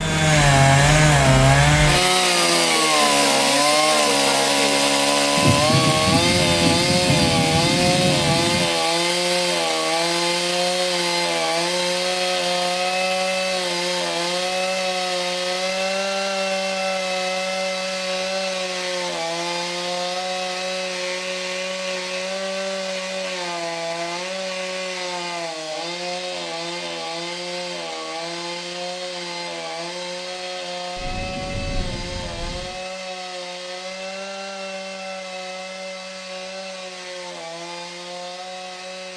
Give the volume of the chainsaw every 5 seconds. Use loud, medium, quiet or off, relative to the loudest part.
loud, loud, medium, medium, medium, quiet, quiet, quiet.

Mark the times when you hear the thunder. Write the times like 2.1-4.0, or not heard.
5.3-8.7, 30.9-32.8.